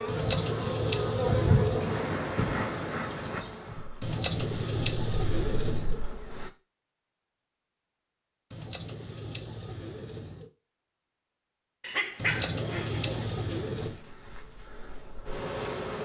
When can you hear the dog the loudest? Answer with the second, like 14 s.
12 s.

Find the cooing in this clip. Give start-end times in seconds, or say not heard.
0.1-2.0, 4.0-6.0, 8.5-10.5, 12.2-14.0.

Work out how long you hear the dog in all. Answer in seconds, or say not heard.
2 s.